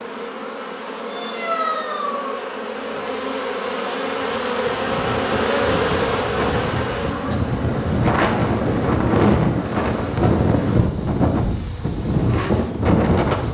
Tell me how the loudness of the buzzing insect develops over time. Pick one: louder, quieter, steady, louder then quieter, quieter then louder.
louder then quieter.